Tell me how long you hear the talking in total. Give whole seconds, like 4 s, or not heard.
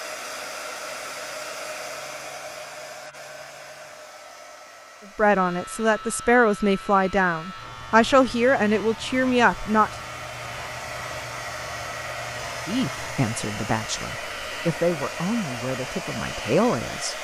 9 s.